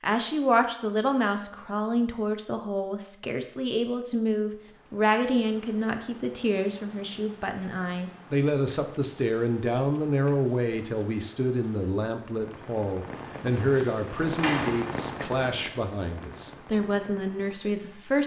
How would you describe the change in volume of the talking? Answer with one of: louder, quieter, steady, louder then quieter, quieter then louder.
steady.